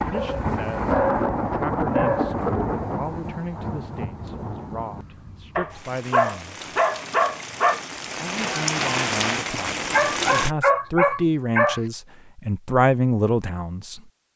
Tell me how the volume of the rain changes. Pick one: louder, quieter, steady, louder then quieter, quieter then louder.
quieter then louder.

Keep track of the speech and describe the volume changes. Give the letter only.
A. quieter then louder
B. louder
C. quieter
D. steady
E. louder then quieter
B.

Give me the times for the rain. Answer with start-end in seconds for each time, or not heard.
0.0-10.5.